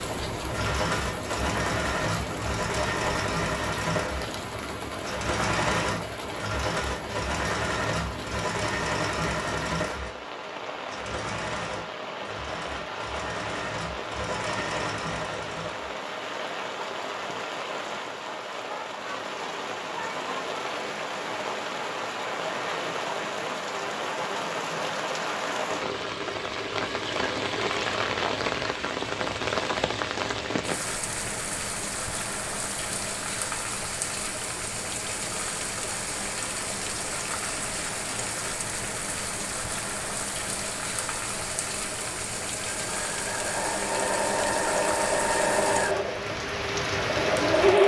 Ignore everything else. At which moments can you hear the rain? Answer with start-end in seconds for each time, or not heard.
0.0-47.8.